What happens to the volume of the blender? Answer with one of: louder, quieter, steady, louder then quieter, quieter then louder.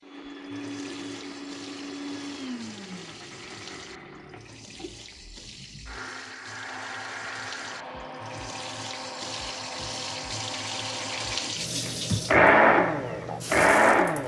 quieter then louder.